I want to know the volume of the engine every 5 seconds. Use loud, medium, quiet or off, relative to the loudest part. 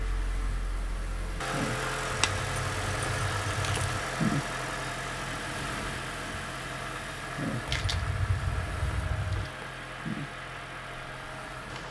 loud, loud, medium.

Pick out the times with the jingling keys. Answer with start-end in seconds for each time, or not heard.
2.1-4.0, 7.7-9.5.